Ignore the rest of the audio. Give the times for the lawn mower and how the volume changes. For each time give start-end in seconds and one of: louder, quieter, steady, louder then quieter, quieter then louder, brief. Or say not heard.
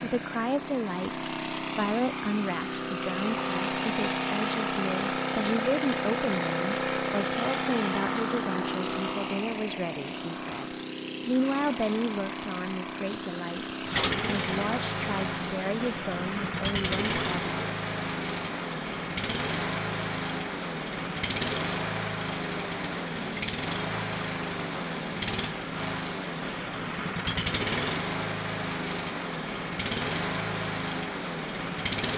0.0-32.1 steady.